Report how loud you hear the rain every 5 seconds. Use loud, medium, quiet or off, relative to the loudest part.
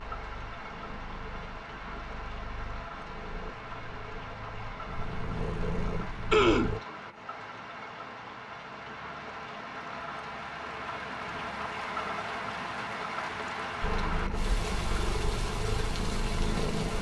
medium, medium, loud, loud.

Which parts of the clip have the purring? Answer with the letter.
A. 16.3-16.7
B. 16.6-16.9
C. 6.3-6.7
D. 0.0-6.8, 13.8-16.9
D.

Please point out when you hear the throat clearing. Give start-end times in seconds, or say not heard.
6.3-6.7.